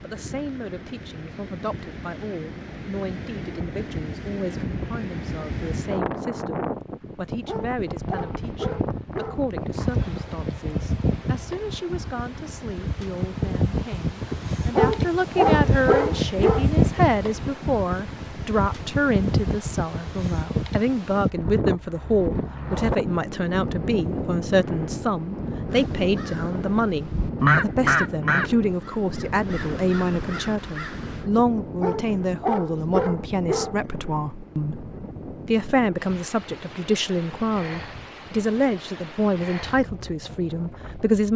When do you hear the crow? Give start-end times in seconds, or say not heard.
25.7-31.3.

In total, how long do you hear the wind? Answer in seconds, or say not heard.
41 s.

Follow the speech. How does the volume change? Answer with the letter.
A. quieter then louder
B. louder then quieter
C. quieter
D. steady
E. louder
E.